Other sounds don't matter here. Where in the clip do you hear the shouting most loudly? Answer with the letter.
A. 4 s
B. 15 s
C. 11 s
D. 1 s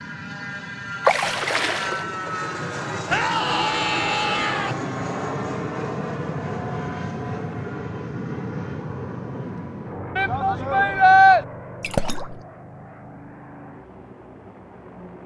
C.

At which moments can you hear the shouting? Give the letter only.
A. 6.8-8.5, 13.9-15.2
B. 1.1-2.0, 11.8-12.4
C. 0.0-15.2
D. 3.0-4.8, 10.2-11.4
D.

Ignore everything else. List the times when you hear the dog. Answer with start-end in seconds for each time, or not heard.
not heard.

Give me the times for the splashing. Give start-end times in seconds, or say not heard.
1.1-2.0, 11.8-12.4.